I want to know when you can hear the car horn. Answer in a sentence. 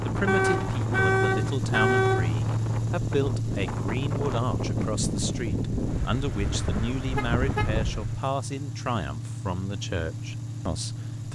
You can hear the car horn from 0.2 to 2.3 s and from 7.2 to 7.7 s.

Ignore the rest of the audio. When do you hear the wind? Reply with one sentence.
You can hear the wind from 0.0 to 8.2 s.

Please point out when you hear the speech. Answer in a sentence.
You can hear the speech from 0.0 to 11.2 s.